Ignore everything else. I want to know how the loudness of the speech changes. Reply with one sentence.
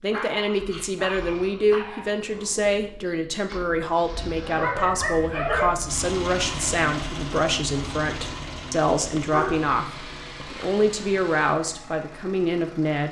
The loudness of the speech stays about the same.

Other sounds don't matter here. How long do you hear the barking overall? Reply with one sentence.
The barking can be heard for 5 seconds in total.